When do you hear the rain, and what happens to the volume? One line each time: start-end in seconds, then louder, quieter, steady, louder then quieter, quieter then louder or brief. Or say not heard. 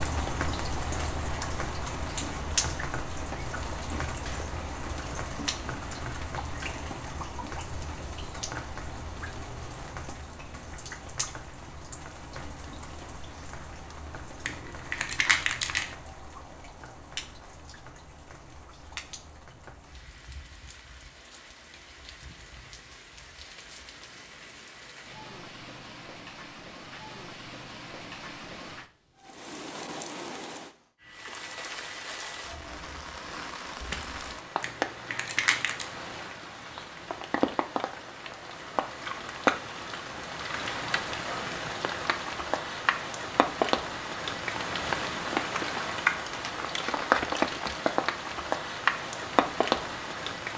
0.0-50.5 quieter then louder.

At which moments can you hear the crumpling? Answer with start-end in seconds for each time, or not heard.
14.4-15.9, 34.6-35.9.